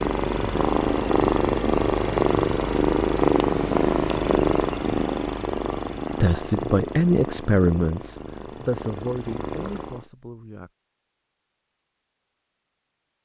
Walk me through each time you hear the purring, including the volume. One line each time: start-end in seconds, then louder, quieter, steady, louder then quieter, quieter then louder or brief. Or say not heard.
0.0-10.1 quieter.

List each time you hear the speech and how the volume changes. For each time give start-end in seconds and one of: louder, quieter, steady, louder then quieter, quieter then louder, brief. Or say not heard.
6.1-10.7 quieter.